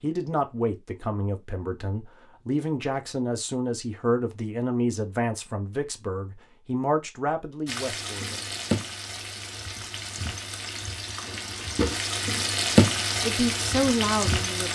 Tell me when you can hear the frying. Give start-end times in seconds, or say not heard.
7.7-14.7.